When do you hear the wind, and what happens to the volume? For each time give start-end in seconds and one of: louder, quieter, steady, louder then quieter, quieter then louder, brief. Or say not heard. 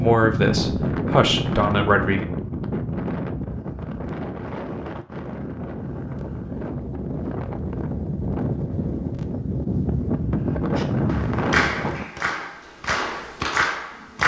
0.0-12.1 quieter then louder.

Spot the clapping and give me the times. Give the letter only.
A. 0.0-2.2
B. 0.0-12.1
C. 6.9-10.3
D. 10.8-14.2
D.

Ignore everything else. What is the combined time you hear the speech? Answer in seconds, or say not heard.
2 s.